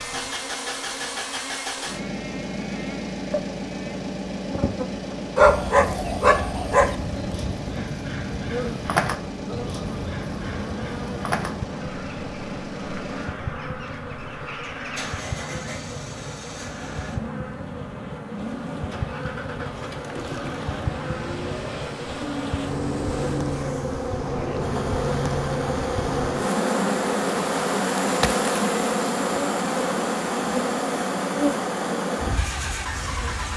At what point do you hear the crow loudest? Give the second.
9 s.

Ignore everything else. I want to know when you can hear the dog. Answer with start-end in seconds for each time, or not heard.
5.3-7.0.